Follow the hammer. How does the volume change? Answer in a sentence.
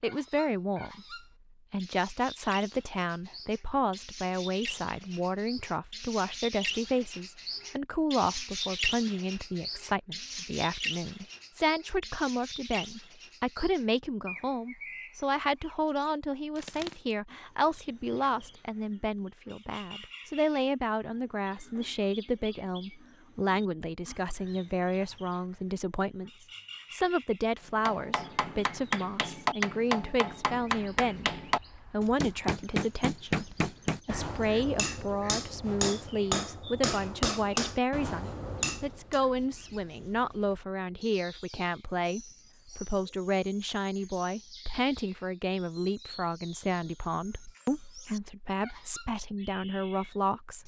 The loudness of the hammer stays about the same.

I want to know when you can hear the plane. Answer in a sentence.
You can't hear the plane here.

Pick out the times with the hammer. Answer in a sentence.
The hammer can be heard from 27.6 to 39.2 s.